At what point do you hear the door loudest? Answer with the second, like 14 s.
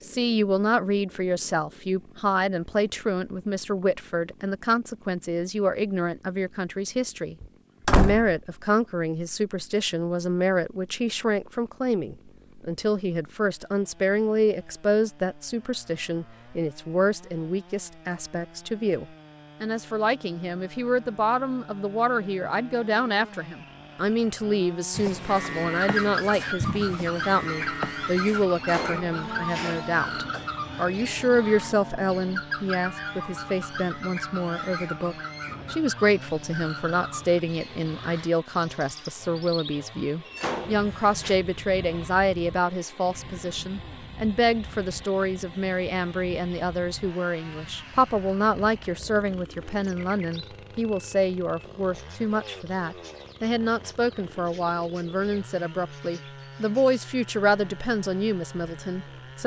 8 s.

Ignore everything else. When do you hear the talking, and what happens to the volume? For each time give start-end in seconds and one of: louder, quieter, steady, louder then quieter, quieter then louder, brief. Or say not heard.
0.0-59.4 steady.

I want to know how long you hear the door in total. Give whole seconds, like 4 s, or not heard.
4 s.